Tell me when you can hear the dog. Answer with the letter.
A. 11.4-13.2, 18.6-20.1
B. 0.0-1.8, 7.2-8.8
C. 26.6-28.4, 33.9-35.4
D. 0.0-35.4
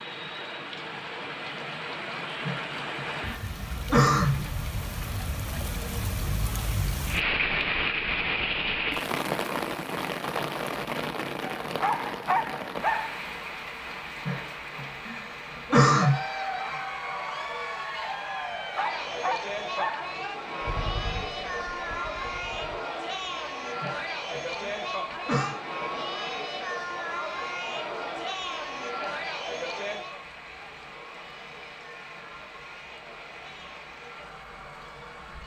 A.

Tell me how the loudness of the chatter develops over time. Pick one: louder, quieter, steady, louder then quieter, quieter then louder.
quieter.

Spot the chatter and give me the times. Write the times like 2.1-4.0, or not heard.
15.9-35.4.